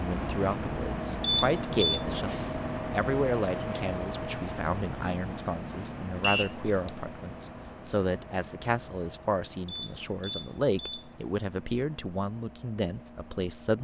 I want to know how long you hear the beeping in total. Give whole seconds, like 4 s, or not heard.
3 s.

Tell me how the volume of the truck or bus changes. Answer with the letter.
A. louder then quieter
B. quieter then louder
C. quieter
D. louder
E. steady
C.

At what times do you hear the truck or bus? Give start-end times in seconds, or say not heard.
0.0-13.7.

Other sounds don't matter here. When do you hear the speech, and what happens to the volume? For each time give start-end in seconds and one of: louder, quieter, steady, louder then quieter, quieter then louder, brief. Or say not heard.
0.0-13.7 steady.